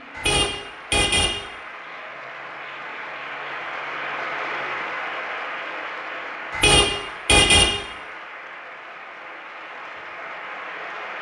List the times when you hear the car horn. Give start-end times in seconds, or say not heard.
0.1-1.4, 6.5-7.7.